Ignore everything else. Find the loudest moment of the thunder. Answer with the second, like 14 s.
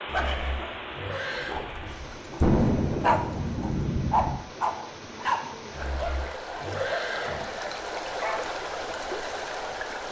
3 s.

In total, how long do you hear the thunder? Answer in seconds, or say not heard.
2 s.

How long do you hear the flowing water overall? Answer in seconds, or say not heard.
10 s.